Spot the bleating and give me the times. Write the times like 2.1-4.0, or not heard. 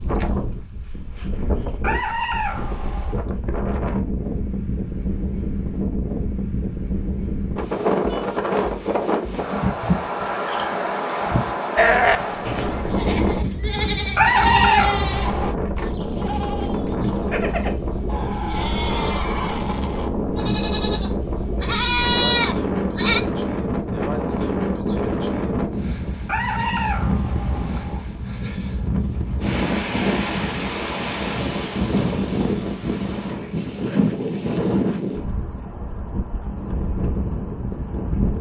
11.8-23.2.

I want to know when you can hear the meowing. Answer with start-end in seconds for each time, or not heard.
1.8-3.2, 14.2-15.6, 26.2-28.1.